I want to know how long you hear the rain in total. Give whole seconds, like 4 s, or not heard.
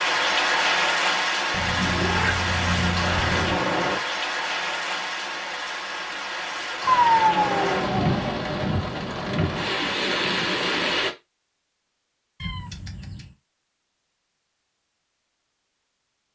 11 s.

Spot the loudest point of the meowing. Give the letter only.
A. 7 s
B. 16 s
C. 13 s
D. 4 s
A.